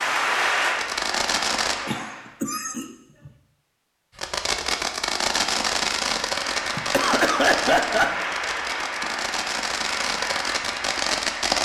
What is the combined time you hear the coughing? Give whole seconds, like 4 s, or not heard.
3 s.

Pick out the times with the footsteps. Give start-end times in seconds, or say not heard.
not heard.